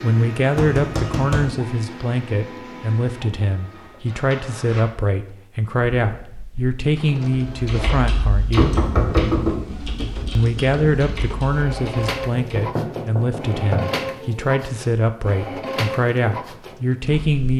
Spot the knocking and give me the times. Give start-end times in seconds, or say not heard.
0.6-1.6, 8.6-10.0, 12.3-14.0.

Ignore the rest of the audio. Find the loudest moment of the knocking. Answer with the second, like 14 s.
9 s.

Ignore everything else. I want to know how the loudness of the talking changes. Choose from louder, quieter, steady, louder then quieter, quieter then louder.
steady.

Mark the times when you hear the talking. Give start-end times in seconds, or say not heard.
0.0-8.8, 10.3-17.5.